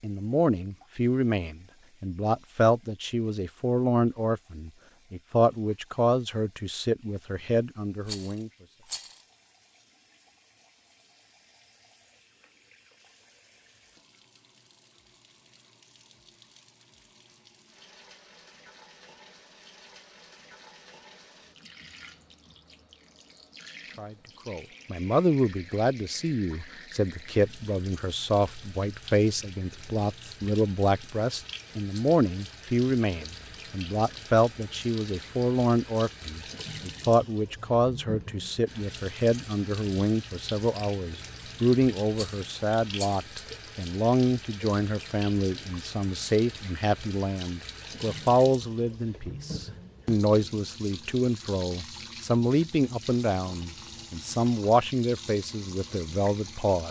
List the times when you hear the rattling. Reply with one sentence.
The rattling can be heard from 8.1 to 9.2 s and from 42.1 to 43.3 s.